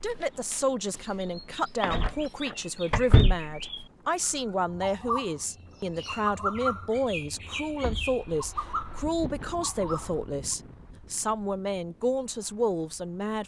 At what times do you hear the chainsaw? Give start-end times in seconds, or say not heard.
not heard.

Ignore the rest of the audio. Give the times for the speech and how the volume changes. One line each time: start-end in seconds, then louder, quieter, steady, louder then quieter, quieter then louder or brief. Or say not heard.
0.0-13.4 steady.